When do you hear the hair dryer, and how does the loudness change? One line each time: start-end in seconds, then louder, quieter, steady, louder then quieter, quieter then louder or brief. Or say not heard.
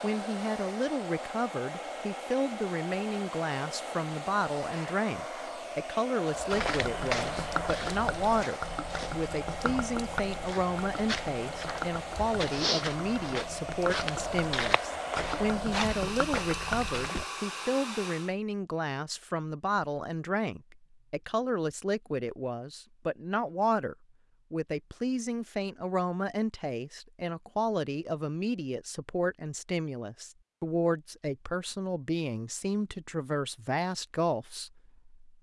0.0-18.4 steady.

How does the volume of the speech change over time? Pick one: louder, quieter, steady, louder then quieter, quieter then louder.
steady.